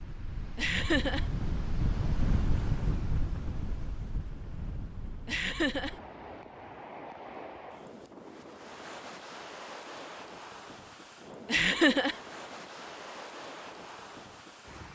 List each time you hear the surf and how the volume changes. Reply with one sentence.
The surf can be heard from 0.0 to 14.8 s, getting quieter.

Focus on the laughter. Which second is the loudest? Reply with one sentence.
The loudest moment of the laughter is at 12 seconds.